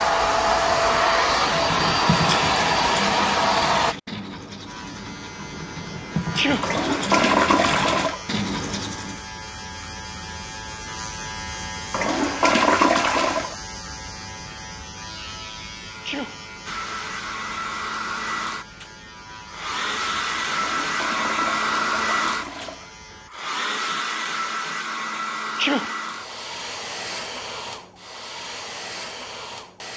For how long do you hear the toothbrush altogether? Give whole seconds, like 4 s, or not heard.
8 s.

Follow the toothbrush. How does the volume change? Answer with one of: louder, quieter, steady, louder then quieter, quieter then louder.
quieter then louder.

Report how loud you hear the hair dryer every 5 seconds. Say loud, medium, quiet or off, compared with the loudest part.
loud, off, off, medium, medium, quiet.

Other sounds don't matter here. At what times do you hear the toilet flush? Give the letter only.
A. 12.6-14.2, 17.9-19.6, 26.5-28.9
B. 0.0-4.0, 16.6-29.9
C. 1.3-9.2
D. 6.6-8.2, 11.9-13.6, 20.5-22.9
D.